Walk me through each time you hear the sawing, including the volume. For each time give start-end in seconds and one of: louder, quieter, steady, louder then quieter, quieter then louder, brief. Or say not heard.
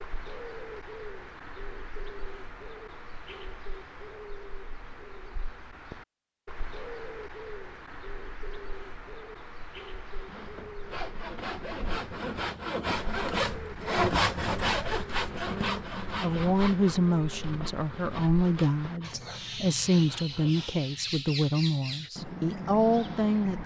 10.0-20.9 louder then quieter.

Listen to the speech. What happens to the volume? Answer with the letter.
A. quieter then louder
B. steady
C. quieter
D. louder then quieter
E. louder
B.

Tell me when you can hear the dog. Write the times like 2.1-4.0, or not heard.
not heard.